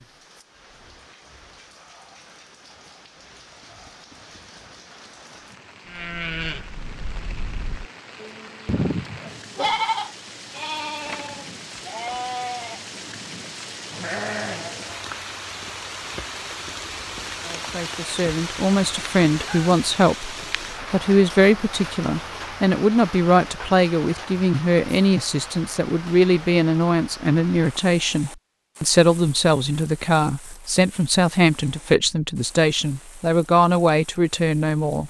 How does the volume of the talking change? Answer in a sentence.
The volume of the talking stays about the same.